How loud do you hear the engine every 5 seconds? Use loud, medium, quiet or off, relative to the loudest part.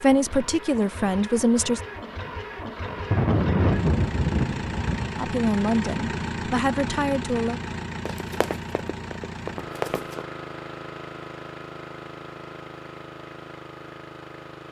loud, loud, medium.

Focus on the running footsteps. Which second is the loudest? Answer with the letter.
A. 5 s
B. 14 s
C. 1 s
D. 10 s
D.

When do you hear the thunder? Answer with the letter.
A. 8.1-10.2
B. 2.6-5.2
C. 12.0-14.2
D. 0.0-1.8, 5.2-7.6
B.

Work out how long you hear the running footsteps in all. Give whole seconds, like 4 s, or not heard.
2 s.